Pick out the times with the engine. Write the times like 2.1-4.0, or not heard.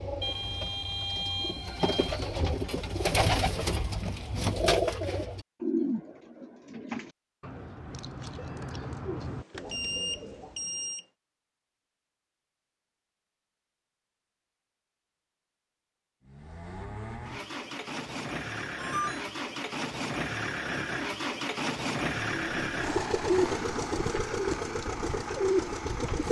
16.2-26.2.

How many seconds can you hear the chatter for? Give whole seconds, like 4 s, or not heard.
not heard.